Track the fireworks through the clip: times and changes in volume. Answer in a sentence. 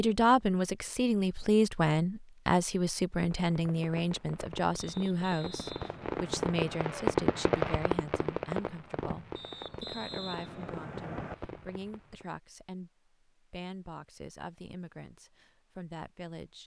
The fireworks can be heard from 3.3 to 12.2 s, getting louder then quieter.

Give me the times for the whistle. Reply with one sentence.
The whistle can be heard from 4.8 to 6.8 s and from 9.3 to 11.3 s.